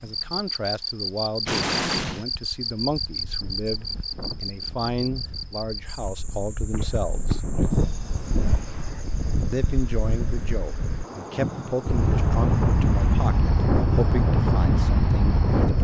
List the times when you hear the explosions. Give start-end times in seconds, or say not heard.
1.4-2.2.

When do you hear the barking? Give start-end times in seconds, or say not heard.
not heard.